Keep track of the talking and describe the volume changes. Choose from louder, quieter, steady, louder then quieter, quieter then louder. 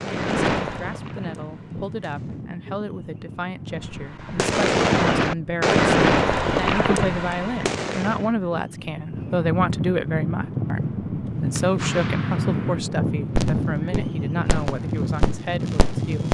louder then quieter.